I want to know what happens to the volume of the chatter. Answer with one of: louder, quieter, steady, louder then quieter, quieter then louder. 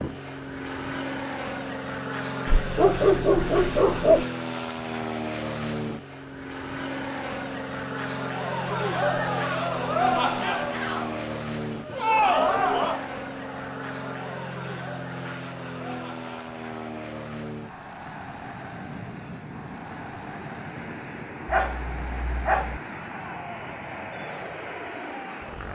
quieter.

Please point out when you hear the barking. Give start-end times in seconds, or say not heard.
2.5-4.2, 21.4-22.8.